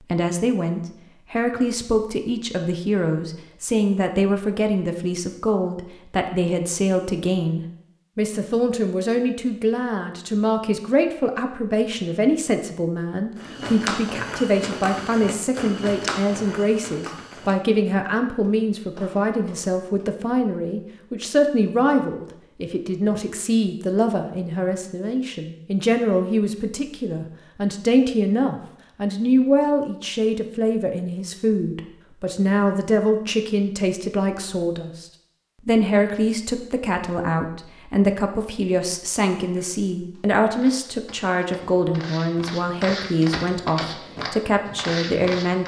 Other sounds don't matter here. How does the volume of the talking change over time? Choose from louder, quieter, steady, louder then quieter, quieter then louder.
steady.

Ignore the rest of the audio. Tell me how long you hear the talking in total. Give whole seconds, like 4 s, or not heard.
45 s.